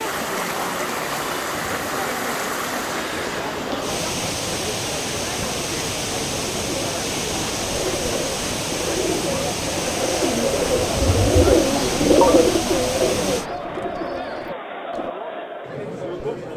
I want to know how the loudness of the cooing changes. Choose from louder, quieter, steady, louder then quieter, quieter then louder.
louder then quieter.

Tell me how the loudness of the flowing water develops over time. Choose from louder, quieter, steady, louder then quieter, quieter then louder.
steady.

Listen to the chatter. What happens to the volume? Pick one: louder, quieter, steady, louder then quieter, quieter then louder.
steady.